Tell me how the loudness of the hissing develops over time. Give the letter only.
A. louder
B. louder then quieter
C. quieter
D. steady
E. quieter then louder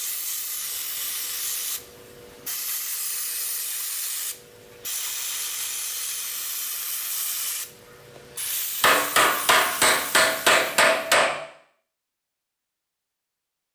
D.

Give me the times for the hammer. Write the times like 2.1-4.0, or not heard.
8.8-11.4.